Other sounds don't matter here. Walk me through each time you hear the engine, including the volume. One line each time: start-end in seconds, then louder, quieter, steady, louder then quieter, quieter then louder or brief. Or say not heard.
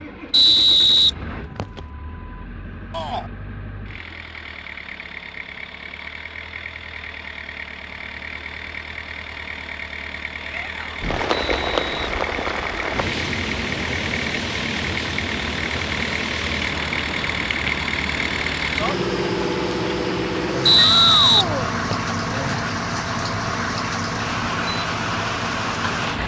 0.0-26.2 louder.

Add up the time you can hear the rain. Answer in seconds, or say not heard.
15 s.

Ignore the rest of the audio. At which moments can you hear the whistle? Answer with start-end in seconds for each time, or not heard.
0.3-1.8, 11.3-12.1, 20.6-22.1.